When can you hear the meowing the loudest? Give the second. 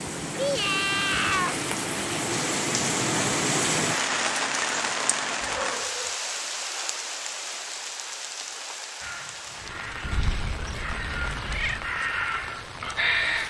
1 s.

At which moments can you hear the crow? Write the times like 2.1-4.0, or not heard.
9.0-13.4.